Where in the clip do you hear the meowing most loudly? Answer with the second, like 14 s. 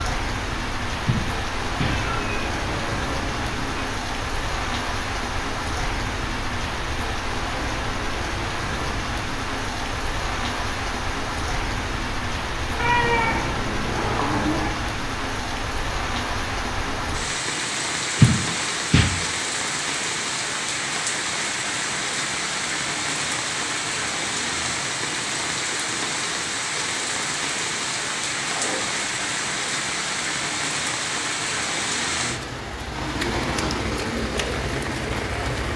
13 s.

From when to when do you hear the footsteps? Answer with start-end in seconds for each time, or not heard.
not heard.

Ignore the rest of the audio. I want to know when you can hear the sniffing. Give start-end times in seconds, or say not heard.
1.1-2.0, 18.1-19.1.